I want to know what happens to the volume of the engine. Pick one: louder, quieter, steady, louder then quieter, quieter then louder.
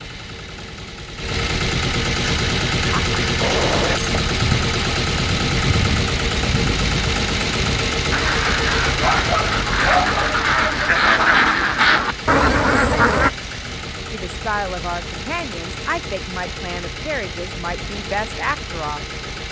quieter.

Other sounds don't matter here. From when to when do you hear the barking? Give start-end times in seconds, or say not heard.
8.9-10.3.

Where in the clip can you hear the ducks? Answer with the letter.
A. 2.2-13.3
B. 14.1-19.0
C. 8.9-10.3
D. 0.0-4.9
A.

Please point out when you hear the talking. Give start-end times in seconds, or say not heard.
14.1-19.0.